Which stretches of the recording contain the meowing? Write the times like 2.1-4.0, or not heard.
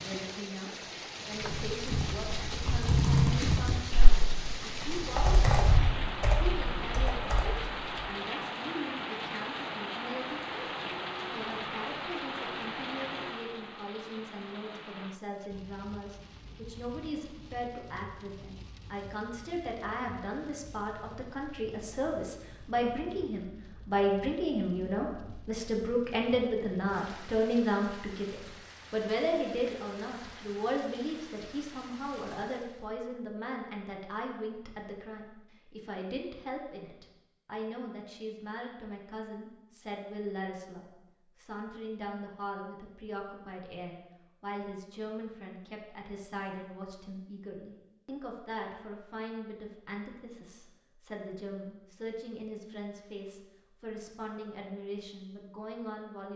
not heard.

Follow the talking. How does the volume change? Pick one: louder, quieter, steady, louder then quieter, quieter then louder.
louder then quieter.